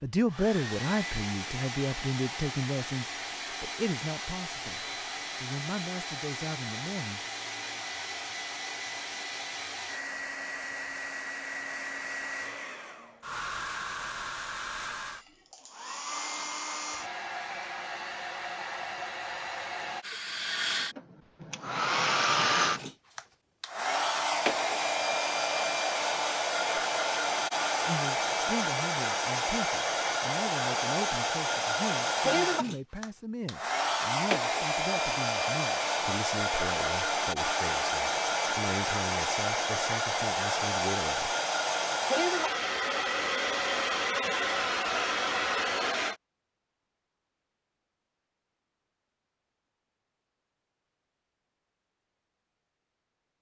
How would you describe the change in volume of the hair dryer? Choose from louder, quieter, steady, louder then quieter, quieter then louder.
louder.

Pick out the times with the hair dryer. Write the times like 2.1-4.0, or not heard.
0.1-46.1.